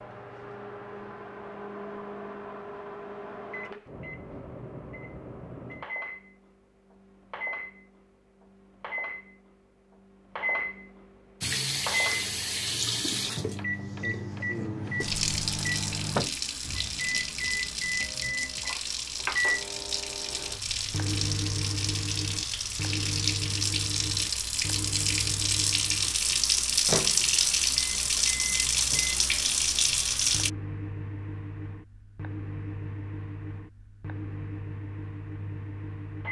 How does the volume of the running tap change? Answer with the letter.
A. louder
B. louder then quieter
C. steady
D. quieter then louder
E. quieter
A.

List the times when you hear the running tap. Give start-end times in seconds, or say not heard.
11.4-30.5.